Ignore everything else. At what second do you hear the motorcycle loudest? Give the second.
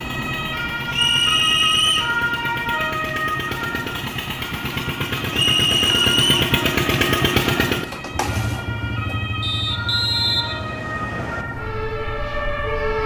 7 s.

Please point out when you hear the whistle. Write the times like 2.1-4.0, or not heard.
0.9-2.1, 5.3-6.5, 9.4-11.4.